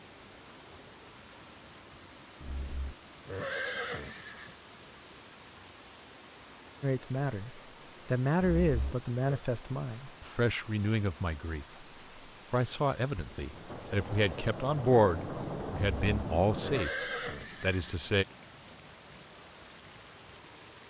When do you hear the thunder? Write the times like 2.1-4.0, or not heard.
13.3-16.9.